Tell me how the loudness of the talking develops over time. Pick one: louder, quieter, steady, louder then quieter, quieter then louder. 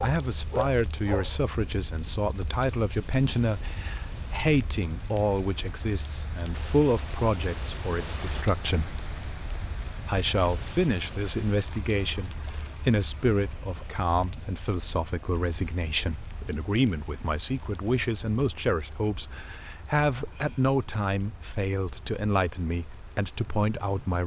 steady.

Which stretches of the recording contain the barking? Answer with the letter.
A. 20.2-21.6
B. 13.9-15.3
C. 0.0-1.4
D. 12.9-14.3
C.